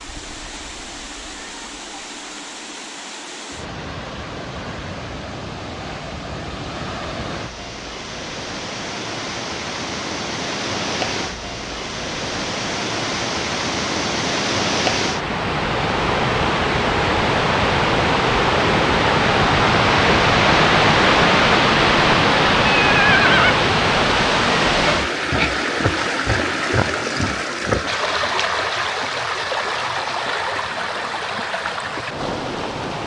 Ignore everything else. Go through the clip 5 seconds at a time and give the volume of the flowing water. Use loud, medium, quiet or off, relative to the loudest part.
quiet, quiet, medium, loud, loud, medium, medium.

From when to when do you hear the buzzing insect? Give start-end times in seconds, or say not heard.
not heard.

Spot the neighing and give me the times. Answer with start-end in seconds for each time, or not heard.
22.6-23.6.